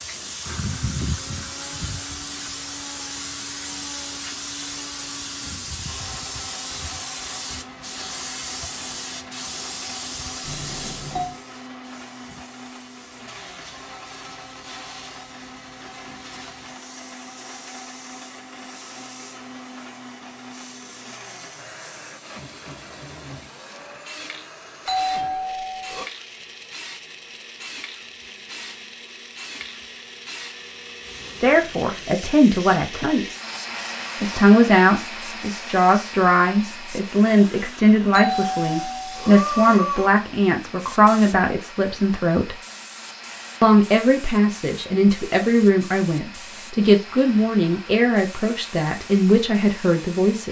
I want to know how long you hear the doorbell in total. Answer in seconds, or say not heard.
4 s.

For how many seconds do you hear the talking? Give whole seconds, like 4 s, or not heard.
17 s.